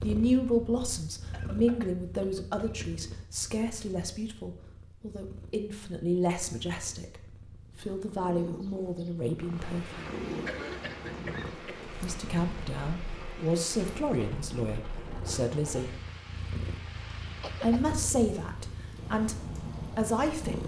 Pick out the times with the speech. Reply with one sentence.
You can hear the speech from 0.0 to 10.1 s, from 12.0 to 15.9 s and from 17.6 to 20.6 s.